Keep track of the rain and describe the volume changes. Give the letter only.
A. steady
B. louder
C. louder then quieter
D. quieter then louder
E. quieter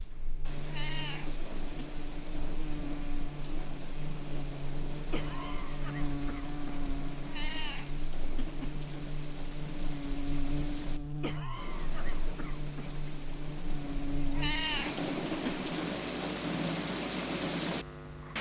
B.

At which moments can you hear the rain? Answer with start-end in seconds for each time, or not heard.
0.0-18.3.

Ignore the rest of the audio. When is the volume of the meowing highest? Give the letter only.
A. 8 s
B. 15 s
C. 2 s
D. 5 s
B.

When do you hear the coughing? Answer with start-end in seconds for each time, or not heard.
5.1-6.8, 11.2-13.0.